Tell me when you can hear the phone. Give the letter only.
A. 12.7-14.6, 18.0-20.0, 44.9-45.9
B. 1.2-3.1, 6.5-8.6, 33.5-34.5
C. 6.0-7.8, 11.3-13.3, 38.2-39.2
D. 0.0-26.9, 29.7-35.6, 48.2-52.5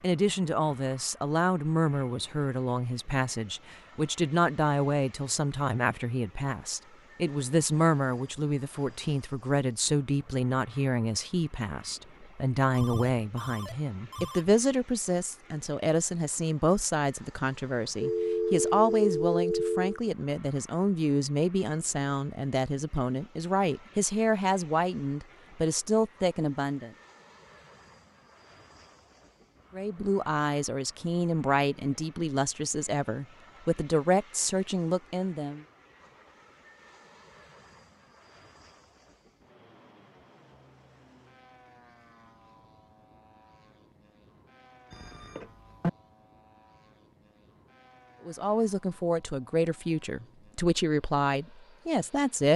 A.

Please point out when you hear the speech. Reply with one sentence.
The speech can be heard from 0.0 to 26.9 s, from 29.7 to 35.6 s and from 48.2 to 52.5 s.